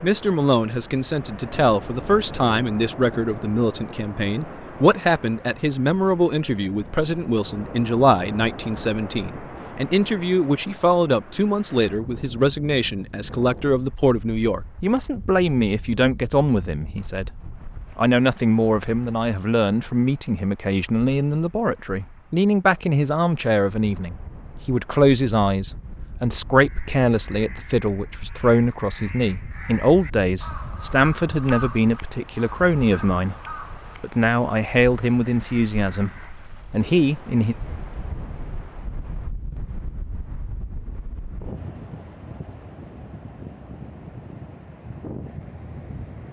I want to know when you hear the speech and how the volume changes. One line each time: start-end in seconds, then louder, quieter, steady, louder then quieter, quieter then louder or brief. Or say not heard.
0.0-37.5 steady.